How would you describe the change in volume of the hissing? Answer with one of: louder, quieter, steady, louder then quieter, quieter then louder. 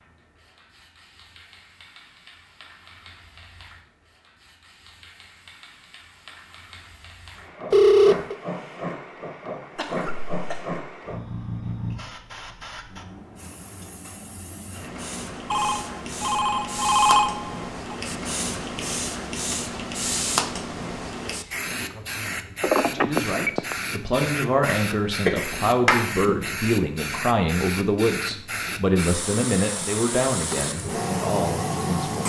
louder.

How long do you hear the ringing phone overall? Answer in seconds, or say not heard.
4 s.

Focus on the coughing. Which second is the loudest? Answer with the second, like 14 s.
26 s.